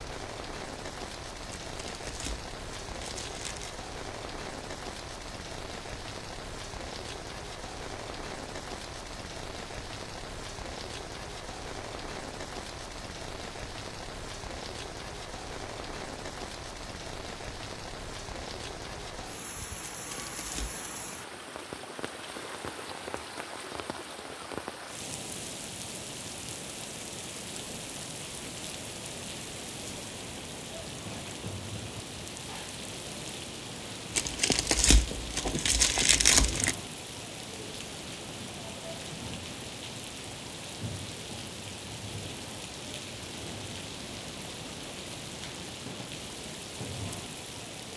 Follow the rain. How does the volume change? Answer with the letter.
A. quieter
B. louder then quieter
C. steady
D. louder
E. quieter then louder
C.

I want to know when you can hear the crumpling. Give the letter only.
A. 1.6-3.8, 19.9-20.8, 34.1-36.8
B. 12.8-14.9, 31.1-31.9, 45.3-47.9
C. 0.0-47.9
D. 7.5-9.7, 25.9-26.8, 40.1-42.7
A.